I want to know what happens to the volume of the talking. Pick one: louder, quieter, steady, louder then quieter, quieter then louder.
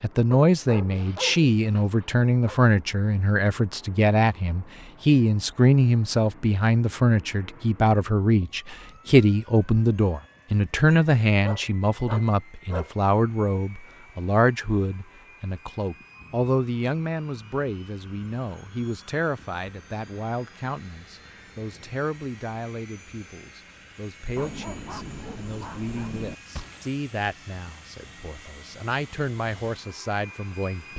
quieter.